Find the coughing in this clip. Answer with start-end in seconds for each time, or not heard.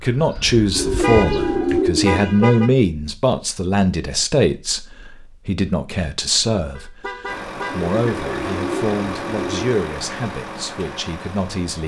not heard.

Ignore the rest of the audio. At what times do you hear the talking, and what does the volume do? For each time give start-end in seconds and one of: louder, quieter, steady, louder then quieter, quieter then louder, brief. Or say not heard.
0.0-11.8 quieter.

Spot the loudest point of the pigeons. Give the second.
2 s.